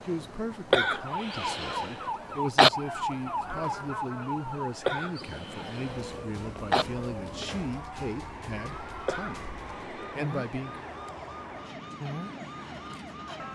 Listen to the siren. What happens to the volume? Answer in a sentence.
The volume of the siren goes down.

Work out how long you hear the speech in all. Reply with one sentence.
The speech can be heard for 11 seconds in total.